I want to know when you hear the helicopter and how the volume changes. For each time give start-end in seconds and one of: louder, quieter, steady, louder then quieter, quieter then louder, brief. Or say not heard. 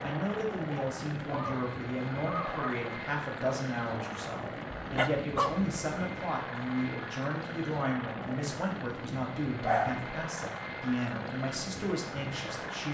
0.0-12.8 steady.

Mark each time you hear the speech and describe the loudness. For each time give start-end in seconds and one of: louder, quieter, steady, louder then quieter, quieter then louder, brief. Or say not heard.
0.0-12.8 steady.